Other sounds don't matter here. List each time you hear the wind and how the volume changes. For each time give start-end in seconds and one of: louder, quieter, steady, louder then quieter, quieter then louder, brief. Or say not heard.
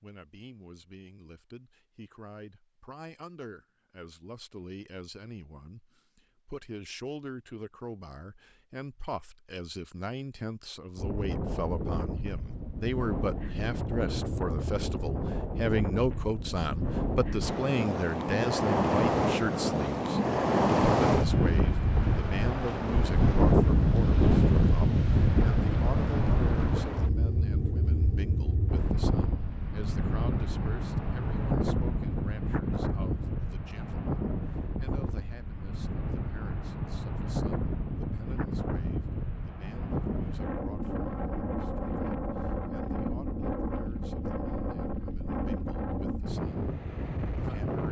10.9-47.8 louder then quieter.